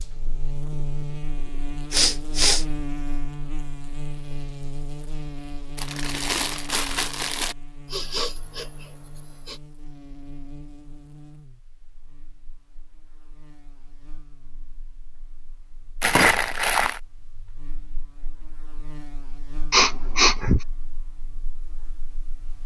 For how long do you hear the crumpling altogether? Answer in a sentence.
The crumpling can be heard for 3 seconds in total.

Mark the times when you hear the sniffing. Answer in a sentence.
You can hear the sniffing from 1.9 to 2.6 s, from 7.8 to 9.6 s and from 19.7 to 20.6 s.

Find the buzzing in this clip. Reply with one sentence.
You can hear the buzzing from 0.0 to 22.6 s.